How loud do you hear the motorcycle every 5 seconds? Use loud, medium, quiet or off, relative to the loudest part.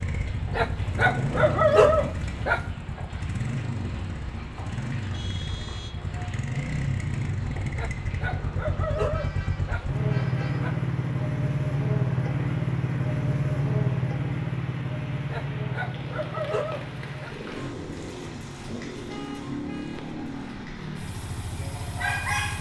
medium, medium, loud, medium, medium.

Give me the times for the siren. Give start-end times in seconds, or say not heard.
not heard.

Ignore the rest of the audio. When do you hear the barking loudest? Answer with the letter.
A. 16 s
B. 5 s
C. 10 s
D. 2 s
D.